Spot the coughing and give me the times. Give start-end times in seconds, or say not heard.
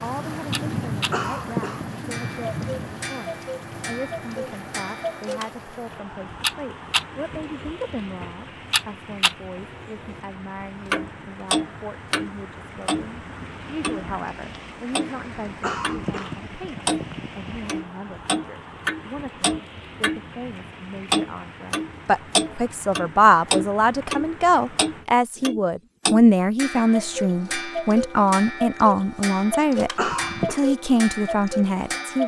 1.1-1.9, 15.6-17.6, 29.9-30.6.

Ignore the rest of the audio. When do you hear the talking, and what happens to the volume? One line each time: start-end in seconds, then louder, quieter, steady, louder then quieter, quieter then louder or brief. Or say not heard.
0.0-32.2 louder.